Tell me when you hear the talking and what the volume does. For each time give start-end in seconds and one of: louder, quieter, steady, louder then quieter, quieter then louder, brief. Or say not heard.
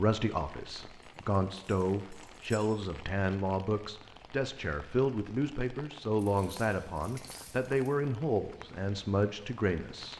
0.0-10.1 steady.